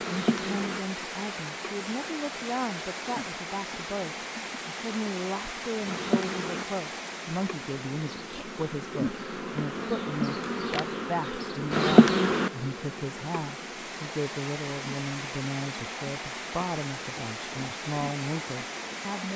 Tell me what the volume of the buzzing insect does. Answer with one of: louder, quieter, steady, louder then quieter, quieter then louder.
louder then quieter.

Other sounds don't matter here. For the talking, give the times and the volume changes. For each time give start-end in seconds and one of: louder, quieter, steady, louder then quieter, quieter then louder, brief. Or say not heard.
0.1-19.3 steady.